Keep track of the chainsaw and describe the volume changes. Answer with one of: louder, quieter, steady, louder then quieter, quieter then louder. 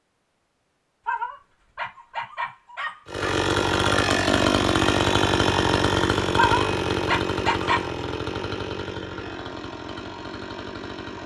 quieter.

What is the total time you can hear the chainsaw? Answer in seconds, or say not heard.
8 s.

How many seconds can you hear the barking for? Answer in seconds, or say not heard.
4 s.